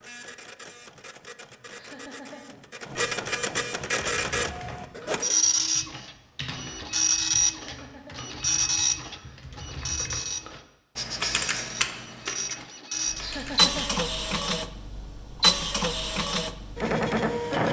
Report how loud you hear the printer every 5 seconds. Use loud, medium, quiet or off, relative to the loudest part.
medium, loud, loud, loud.